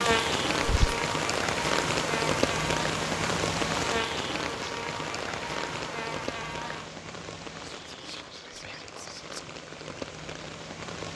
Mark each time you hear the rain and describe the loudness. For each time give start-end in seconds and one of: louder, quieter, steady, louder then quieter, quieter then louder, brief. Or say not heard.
0.0-11.1 quieter.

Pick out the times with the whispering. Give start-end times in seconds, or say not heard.
0.6-1.0, 7.7-9.4.